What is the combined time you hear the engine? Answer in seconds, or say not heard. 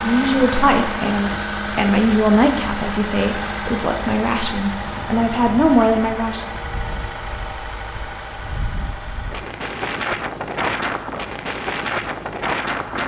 13 s.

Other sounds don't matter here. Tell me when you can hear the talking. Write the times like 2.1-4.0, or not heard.
0.0-6.5.